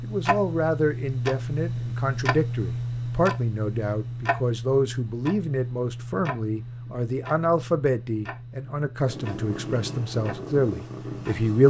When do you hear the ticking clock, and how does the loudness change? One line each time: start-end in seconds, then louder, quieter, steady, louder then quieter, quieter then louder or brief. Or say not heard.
0.0-11.5 quieter.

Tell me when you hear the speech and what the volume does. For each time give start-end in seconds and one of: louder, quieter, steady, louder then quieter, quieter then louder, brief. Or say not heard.
0.0-11.6 steady.